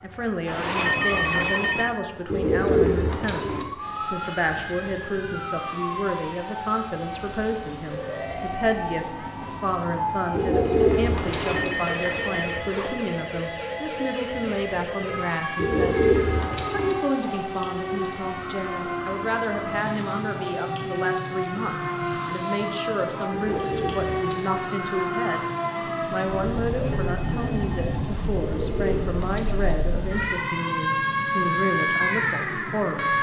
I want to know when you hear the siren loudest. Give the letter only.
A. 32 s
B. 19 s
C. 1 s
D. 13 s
A.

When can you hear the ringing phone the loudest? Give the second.
1 s.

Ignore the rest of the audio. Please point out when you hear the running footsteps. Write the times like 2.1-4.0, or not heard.
not heard.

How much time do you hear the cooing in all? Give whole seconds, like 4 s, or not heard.
7 s.